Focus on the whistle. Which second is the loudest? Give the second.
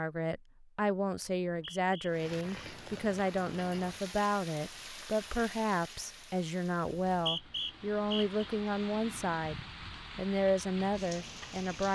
7 s.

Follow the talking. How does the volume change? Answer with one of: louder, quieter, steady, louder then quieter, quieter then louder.
steady.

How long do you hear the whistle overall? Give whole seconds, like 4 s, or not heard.
2 s.